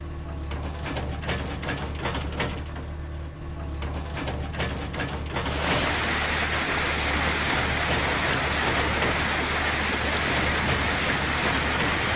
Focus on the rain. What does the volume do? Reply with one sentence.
The volume of the rain stays about the same.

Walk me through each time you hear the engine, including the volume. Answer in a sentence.
The engine can be heard from 0.0 to 12.1 s, at a steady volume.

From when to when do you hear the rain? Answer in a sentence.
The rain can be heard from 5.4 to 12.1 s.